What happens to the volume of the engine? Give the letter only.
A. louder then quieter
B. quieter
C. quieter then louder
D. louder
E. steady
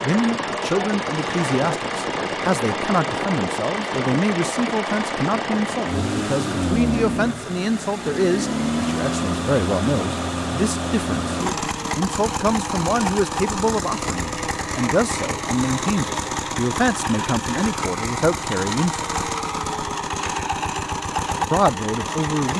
E.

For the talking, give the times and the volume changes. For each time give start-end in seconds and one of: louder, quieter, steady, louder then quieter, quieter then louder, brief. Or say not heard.
0.0-19.1 steady
21.5-22.5 brief.